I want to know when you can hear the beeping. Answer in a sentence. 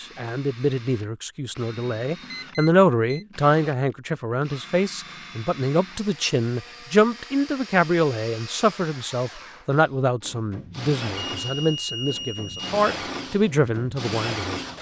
You can hear the beeping from 2.3 to 3.2 s and from 11.2 to 12.6 s.